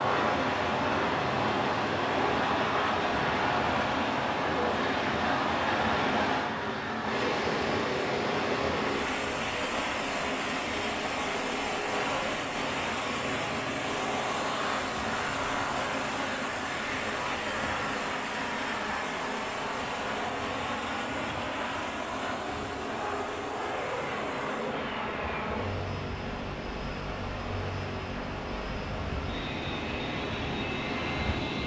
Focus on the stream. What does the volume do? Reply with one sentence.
The volume of the stream goes down.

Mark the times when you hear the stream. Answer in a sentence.
You can hear the stream from 0.0 to 31.6 s.